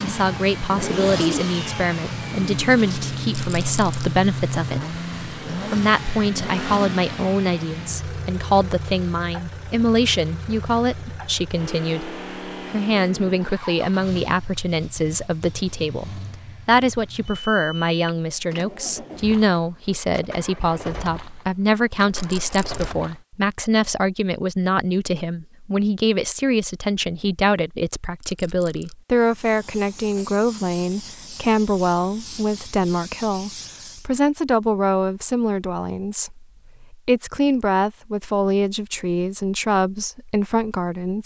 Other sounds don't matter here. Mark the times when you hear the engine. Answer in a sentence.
The engine can be heard from 0.0 to 23.2 s.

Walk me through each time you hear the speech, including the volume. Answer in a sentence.
The speech can be heard from 0.0 to 41.2 s, at a steady volume.